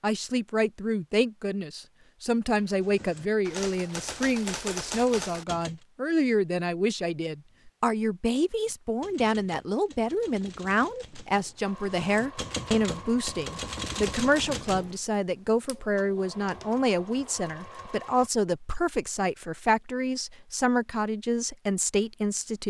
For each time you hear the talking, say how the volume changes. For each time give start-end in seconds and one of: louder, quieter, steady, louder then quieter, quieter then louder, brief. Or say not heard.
0.0-22.6 steady.